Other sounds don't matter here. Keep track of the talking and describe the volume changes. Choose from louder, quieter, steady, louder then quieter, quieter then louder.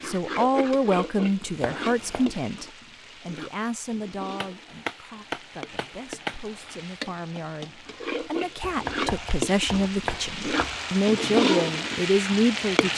quieter then louder.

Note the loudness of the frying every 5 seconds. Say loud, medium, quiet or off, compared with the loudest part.
medium, medium, loud.